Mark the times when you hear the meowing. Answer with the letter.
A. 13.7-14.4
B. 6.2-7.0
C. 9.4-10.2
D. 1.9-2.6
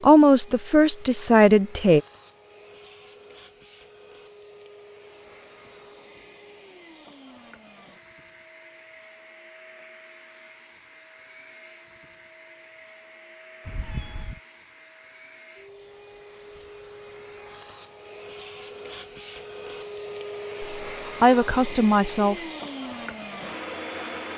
A.